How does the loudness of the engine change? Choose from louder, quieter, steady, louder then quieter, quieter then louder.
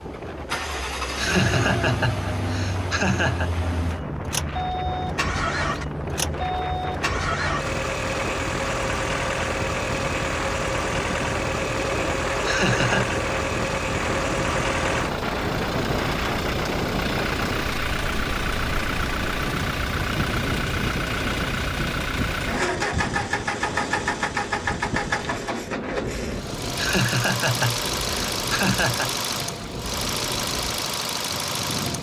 steady.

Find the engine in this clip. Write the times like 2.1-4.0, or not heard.
0.0-31.9.